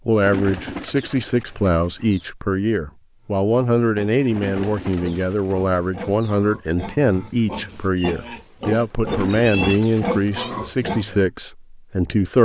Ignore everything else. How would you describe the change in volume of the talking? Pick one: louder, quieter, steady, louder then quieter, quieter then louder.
steady.